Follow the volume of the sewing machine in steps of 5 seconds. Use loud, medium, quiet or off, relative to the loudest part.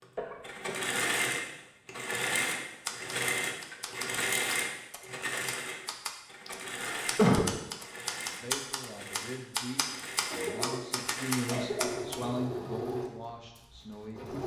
loud, medium, medium.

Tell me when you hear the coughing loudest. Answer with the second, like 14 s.
7 s.